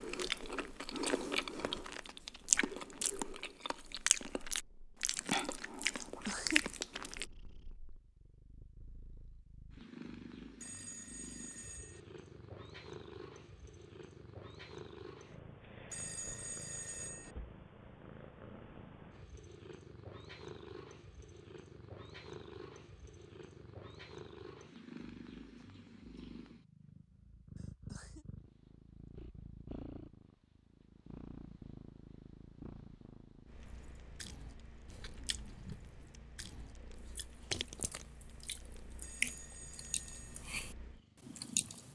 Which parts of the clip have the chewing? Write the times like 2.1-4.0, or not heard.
0.0-7.2, 33.6-41.9.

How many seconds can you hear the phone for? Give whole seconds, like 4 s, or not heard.
4 s.